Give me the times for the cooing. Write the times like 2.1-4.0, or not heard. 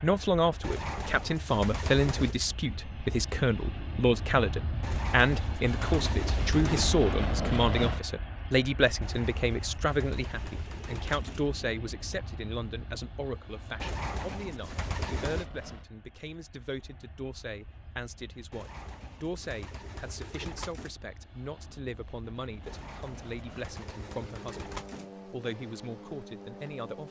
0.6-2.4, 4.8-7.0, 9.0-11.5, 13.8-15.5, 18.5-20.9, 22.6-25.1.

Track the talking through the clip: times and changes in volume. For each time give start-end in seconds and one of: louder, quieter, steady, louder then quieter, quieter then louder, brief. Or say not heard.
0.0-27.0 quieter.